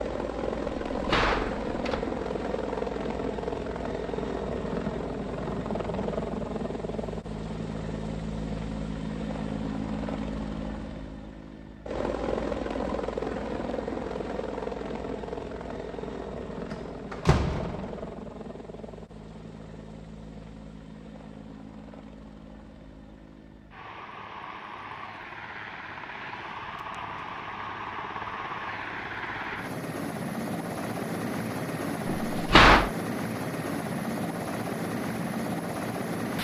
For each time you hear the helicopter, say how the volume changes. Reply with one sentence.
You can hear the helicopter from 0.0 to 36.3 s, getting quieter then louder.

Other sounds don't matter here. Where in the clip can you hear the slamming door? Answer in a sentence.
You can hear the slamming door from 0.9 to 2.1 s, from 16.7 to 18.1 s and from 32.2 to 32.9 s.